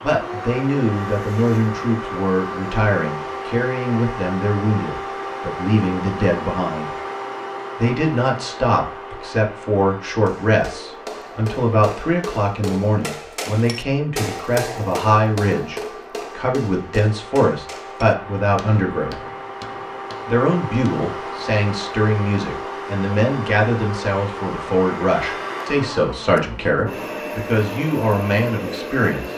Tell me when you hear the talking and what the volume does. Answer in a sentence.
The talking can be heard from 0.0 to 6.9 s, at a steady volume; from 7.8 to 19.2 s, at a steady volume; and from 20.2 to 29.2 s, at a steady volume.